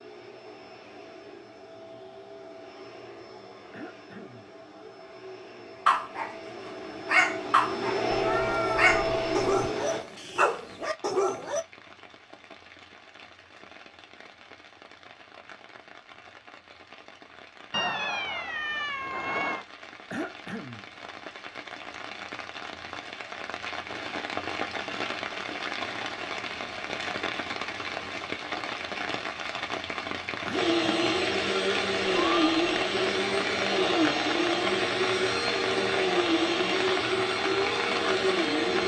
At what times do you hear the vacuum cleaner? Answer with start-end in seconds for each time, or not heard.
0.0-10.1, 30.5-38.8.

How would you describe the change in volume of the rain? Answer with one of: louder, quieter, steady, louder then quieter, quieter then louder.
louder.